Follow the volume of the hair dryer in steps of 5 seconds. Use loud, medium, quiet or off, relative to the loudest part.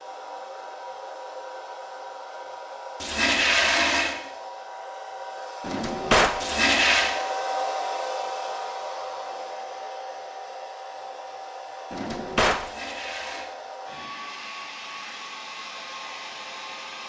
medium, loud, medium, medium.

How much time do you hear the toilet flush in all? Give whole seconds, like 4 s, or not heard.
3 s.